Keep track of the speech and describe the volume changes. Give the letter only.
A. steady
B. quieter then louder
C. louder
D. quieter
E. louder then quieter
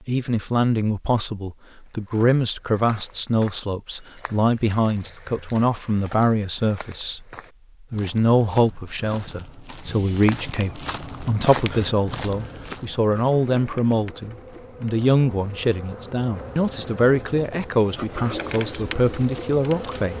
A.